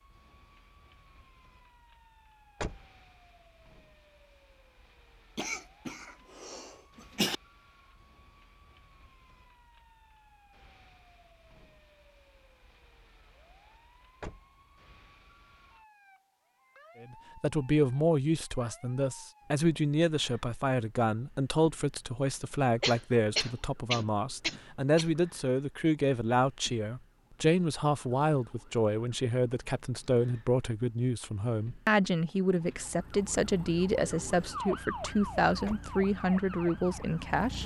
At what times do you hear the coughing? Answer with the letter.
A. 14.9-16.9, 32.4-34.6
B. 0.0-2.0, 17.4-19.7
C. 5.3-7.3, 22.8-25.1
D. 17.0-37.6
C.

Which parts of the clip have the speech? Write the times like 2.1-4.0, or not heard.
17.0-37.6.